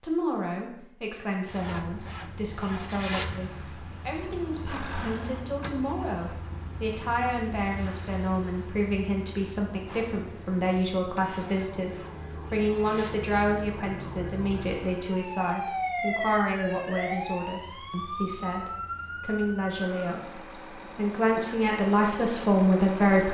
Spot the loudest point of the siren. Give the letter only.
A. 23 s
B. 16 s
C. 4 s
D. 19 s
B.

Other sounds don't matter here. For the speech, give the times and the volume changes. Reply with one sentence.
You can hear the speech from 0.0 to 23.2 s, getting louder.